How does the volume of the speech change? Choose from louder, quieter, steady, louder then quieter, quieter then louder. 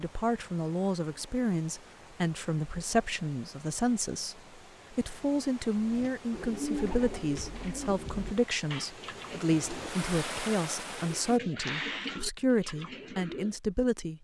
steady.